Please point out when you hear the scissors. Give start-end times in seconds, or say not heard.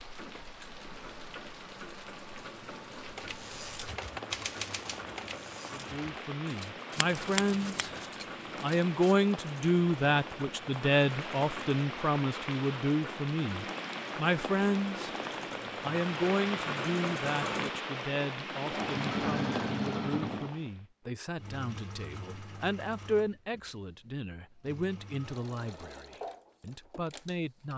7.0-8.0.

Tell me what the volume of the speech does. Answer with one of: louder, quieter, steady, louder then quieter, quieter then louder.
quieter.